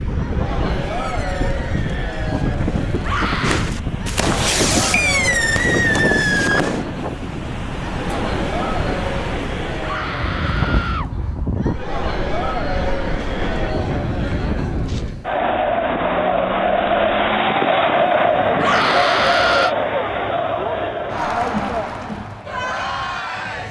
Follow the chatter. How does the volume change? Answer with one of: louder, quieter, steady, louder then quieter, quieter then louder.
louder.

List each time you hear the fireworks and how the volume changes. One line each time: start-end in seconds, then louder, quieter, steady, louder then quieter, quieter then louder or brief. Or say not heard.
0.8-6.8 louder.